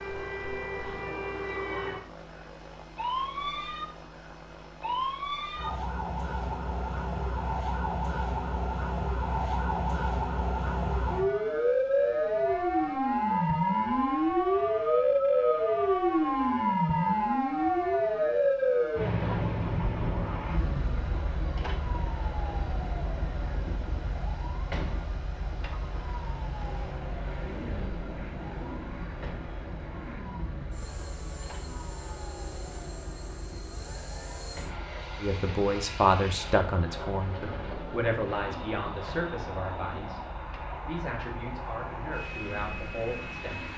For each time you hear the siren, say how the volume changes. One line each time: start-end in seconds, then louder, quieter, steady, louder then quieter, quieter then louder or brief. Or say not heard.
0.0-43.7 louder then quieter.